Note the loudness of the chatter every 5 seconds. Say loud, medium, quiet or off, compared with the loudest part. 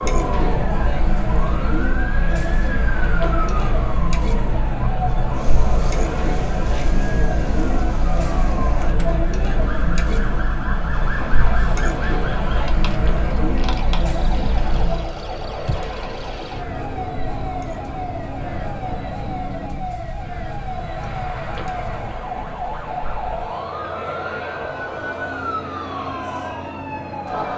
loud, loud, loud, quiet, medium, medium.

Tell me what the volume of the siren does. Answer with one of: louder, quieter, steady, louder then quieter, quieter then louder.
steady.